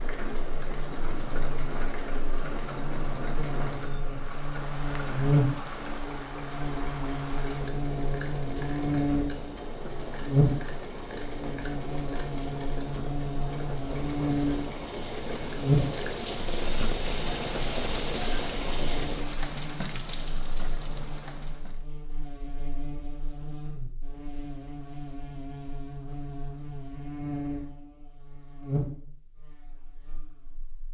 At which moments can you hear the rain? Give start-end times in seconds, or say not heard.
0.0-21.9.